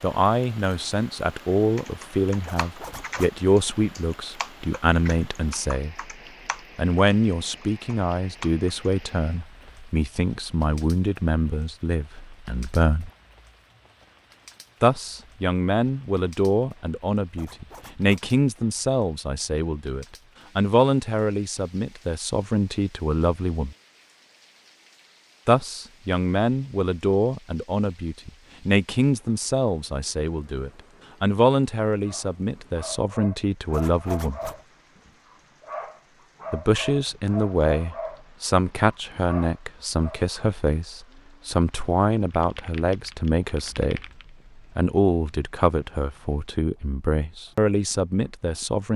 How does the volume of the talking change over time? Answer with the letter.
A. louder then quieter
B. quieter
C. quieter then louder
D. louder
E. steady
E.